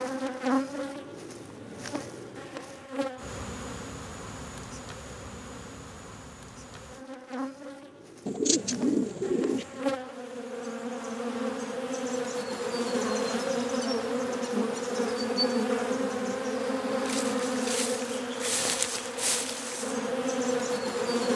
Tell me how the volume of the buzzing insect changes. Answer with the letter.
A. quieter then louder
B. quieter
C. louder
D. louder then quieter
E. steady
A.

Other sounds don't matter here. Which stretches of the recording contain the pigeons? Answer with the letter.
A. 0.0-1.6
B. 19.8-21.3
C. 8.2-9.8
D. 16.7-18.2
C.